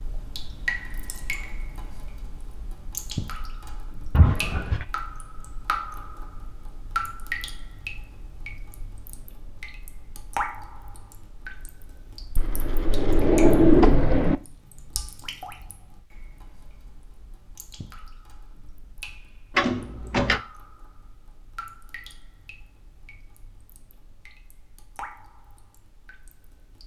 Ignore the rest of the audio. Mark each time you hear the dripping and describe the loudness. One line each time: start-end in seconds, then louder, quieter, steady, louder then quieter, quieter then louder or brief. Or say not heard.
0.0-26.8 quieter.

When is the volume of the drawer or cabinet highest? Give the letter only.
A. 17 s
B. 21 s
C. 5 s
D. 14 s
D.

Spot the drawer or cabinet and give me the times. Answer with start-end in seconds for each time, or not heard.
4.2-4.8, 12.3-14.3, 19.6-20.4.